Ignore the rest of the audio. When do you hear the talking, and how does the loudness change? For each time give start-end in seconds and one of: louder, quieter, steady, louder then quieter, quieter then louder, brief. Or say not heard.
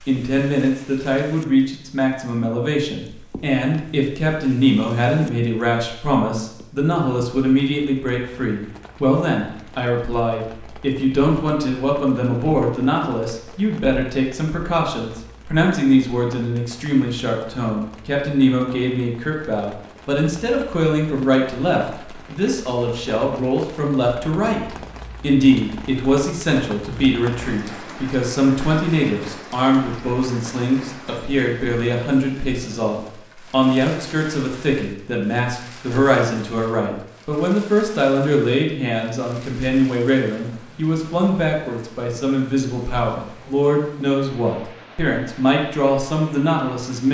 0.1-47.0 steady.